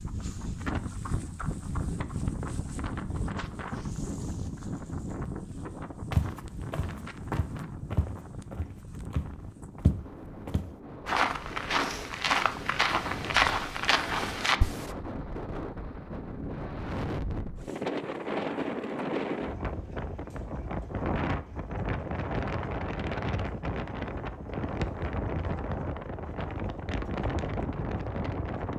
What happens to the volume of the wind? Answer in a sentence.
The volume of the wind goes down, then up.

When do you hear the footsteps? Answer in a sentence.
You can hear the footsteps from 6.1 to 14.9 s.